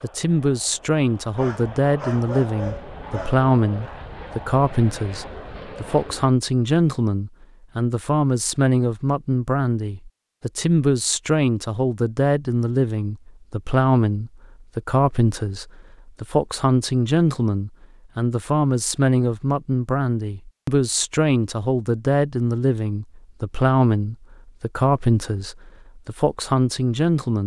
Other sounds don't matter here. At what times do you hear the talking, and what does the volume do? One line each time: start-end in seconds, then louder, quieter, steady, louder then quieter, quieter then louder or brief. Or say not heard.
0.0-27.4 steady.